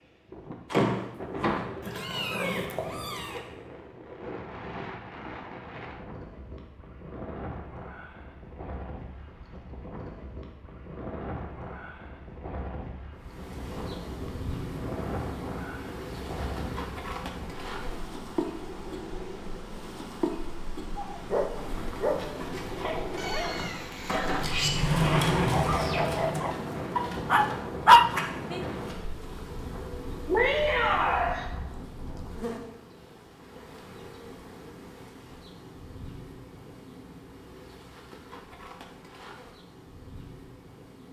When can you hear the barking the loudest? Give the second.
28 s.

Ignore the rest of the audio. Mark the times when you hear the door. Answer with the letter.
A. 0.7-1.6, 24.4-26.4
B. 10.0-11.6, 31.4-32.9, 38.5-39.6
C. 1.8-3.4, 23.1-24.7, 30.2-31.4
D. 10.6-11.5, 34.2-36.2
A.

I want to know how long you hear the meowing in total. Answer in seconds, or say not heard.
4 s.